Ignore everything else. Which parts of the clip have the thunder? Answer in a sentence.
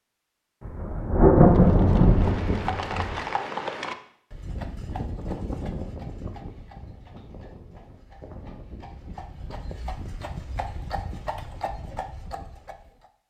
The thunder can be heard from 0.7 to 3.2 s.